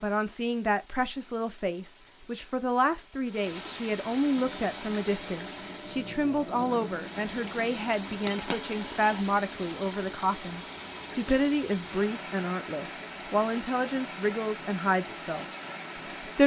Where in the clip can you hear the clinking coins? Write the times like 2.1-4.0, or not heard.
8.2-9.2.